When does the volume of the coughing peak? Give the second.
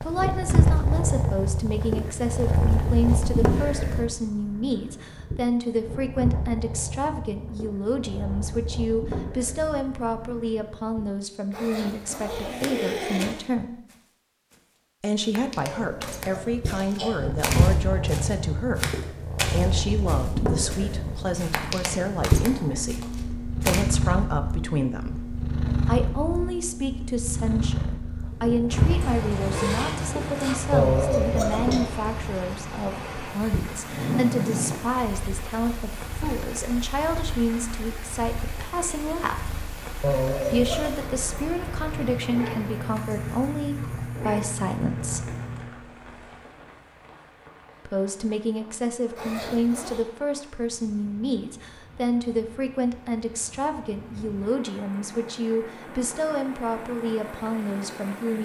31 s.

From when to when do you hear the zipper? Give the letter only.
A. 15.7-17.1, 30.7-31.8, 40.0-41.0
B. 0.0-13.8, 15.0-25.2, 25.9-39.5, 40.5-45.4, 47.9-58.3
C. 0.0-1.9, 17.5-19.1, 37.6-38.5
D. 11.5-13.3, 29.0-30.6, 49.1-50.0
D.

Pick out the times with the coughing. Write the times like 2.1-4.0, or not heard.
15.7-17.1, 30.7-31.8, 40.0-41.0.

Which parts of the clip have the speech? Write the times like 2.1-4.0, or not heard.
0.0-13.8, 15.0-25.2, 25.9-39.5, 40.5-45.4, 47.9-58.3.